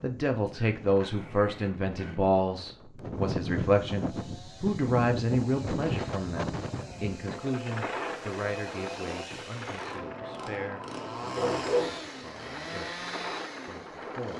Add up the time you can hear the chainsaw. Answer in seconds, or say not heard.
10 s.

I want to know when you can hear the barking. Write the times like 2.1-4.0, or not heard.
0.5-2.3, 11.2-12.0.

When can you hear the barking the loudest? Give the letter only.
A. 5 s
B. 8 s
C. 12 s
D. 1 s
C.